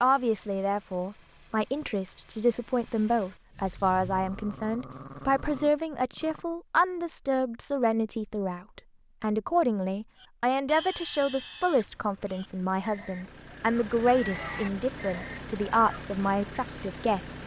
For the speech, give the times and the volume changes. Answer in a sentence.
The speech can be heard from 0.0 to 17.4 s, at a steady volume.